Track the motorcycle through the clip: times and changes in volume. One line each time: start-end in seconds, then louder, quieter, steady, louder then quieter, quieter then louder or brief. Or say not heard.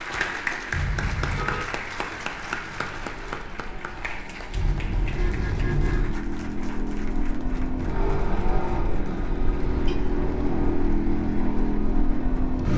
0.0-12.7 louder.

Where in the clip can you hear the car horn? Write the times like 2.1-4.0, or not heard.
0.7-1.6, 4.5-6.2, 9.1-9.9.